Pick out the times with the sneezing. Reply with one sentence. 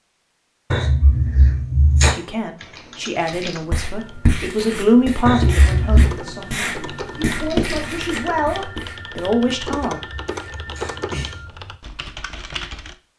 The sneezing can be heard from 0.7 to 2.1 s, from 5.2 to 6.2 s and from 9.4 to 11.4 s.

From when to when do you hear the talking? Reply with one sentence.
You can hear the talking from 2.0 to 10.0 s.